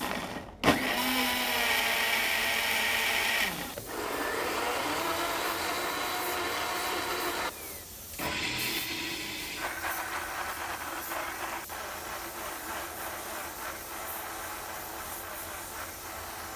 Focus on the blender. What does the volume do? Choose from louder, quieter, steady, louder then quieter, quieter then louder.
quieter.